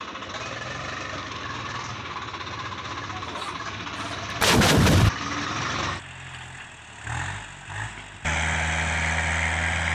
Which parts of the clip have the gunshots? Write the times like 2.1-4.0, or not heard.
3.1-5.1.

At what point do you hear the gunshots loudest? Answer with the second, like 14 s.
5 s.